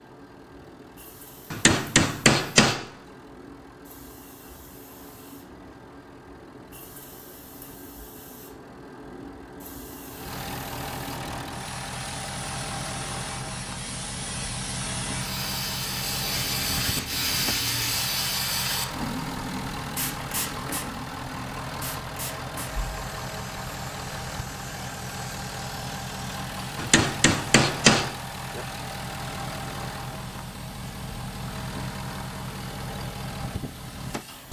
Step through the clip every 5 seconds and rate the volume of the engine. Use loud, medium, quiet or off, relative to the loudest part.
quiet, quiet, loud, loud, loud, loud, loud.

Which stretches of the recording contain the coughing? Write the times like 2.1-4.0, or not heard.
not heard.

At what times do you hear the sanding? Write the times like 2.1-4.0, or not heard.
16.2-18.1.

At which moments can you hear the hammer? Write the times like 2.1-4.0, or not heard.
1.5-2.9, 26.8-28.6.